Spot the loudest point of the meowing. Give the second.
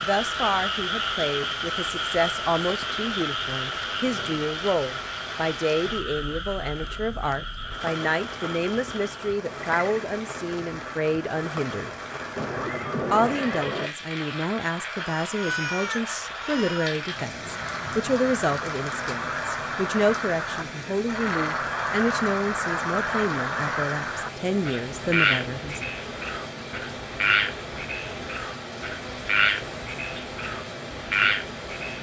16 s.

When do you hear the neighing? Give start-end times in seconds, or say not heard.
12.3-13.9.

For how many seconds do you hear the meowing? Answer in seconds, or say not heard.
2 s.